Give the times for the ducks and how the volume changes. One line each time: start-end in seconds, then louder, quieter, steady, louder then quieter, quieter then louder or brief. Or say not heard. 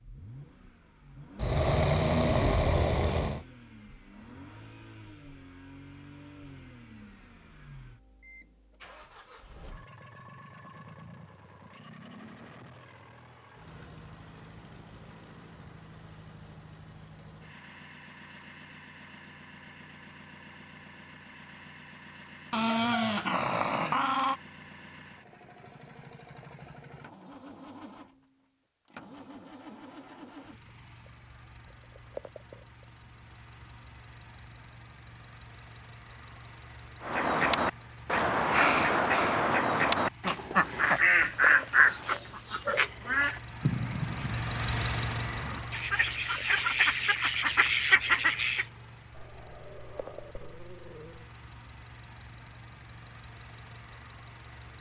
37.0-48.6 quieter then louder.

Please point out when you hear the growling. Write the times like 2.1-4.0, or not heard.
1.4-3.5, 22.5-24.4, 49.1-51.4.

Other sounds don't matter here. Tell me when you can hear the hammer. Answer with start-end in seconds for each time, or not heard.
not heard.